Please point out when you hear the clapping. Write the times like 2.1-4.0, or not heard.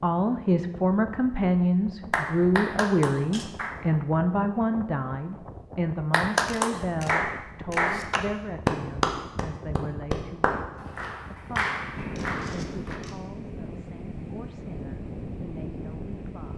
2.1-3.8, 6.1-13.0.